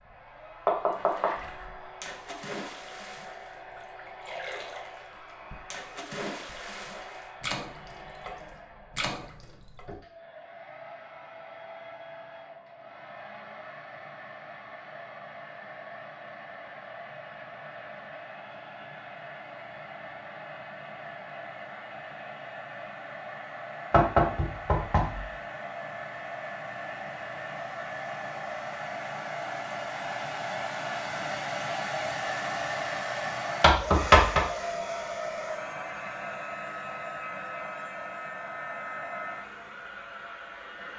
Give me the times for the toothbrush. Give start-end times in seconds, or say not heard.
not heard.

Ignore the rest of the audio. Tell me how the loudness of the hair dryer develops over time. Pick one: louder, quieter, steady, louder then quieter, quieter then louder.
louder.